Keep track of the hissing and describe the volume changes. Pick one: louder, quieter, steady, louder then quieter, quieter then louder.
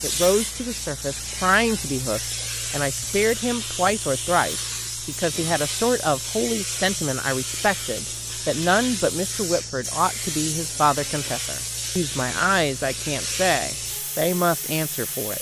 steady.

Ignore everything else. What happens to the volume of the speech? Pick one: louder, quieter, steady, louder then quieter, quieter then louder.
steady.